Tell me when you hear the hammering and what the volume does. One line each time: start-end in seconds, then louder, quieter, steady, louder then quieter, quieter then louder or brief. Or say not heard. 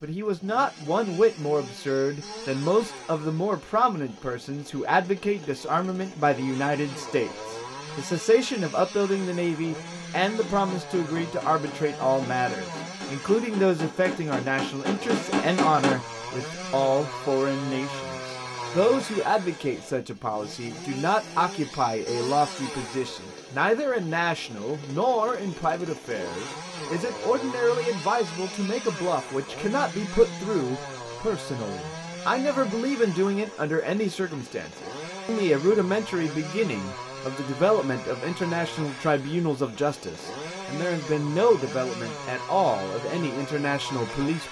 10.2-16.0 louder.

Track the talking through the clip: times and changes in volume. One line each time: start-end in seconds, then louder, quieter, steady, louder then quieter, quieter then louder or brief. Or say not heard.
0.0-44.4 steady.